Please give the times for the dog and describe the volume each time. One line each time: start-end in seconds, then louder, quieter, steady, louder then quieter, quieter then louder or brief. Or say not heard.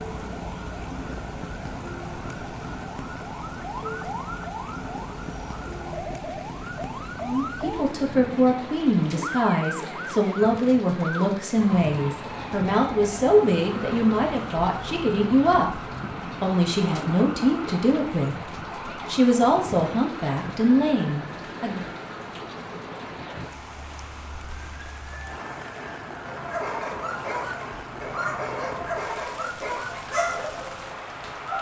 26.2-31.5 steady.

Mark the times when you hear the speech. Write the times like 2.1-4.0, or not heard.
7.2-21.8.